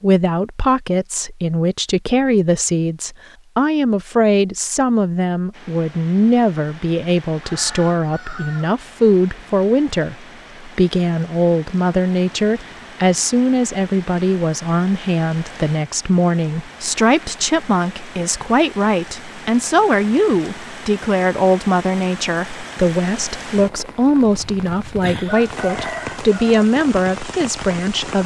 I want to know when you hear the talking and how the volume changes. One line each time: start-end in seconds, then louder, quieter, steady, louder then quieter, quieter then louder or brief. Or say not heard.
0.0-28.2 steady.